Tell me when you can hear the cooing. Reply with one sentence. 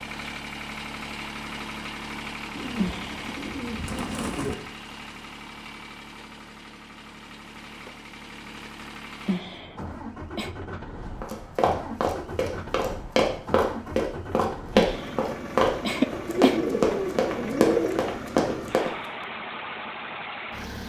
You can hear the cooing from 2.5 to 4.5 s and from 16.2 to 18.1 s.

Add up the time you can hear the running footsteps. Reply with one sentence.
You can hear the running footsteps for 8 seconds altogether.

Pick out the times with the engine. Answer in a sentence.
The engine can be heard from 0.0 to 20.8 s.